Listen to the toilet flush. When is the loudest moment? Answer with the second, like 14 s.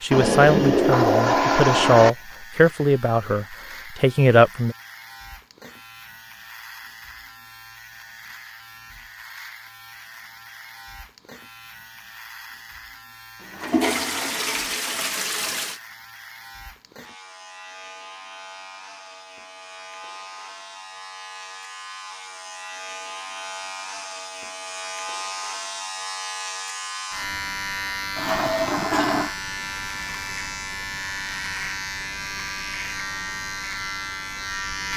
1 s.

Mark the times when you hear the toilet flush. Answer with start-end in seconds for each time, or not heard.
0.1-2.1, 13.5-15.8, 28.1-29.4.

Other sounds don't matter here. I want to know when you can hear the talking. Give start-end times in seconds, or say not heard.
0.0-4.8.